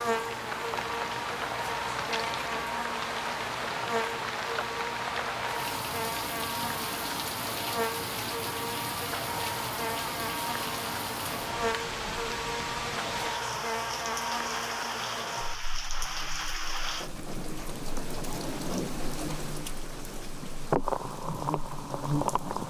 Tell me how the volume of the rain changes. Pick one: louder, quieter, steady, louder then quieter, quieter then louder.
steady.